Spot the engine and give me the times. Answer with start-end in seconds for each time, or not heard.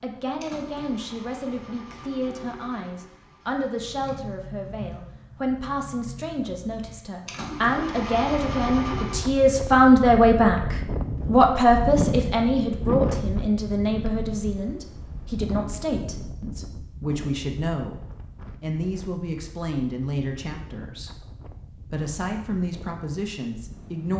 0.0-9.3.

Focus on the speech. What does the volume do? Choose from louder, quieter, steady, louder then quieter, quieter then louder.
louder then quieter.